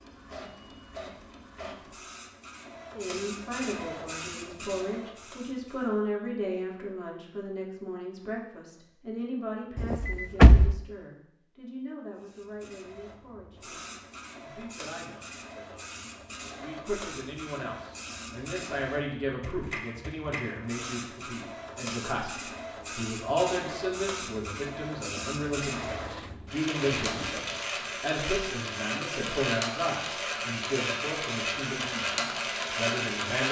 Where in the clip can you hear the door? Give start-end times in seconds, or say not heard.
9.8-10.8, 25.7-27.4.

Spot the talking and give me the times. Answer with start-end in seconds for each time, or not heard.
2.9-33.4.